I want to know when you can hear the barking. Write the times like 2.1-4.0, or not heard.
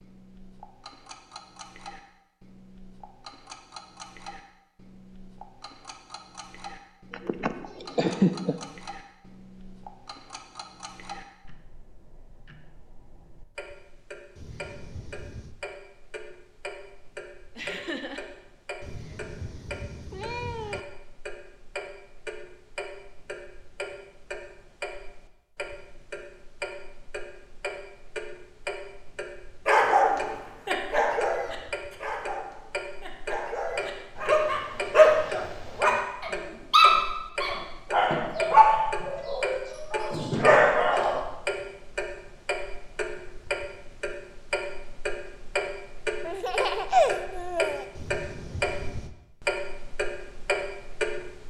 29.6-41.2.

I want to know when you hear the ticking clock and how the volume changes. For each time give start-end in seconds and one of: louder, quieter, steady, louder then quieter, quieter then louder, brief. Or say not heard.
0.0-51.4 louder.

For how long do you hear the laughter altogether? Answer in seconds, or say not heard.
4 s.